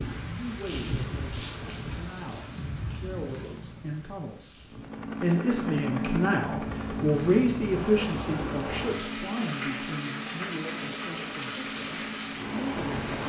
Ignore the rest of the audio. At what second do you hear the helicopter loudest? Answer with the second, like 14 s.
6 s.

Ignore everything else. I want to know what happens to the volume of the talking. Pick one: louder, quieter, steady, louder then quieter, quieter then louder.
louder then quieter.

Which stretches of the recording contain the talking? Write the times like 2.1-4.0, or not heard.
0.2-13.2.